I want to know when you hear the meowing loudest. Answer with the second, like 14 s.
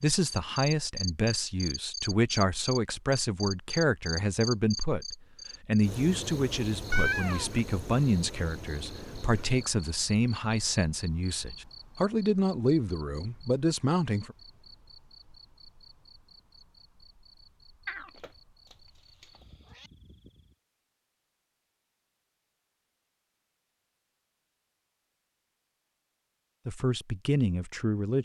7 s.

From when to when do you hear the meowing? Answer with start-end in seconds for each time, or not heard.
6.9-7.5, 17.9-19.9.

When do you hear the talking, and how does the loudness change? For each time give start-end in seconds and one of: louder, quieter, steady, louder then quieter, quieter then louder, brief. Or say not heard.
0.0-14.3 steady
26.6-28.1 brief.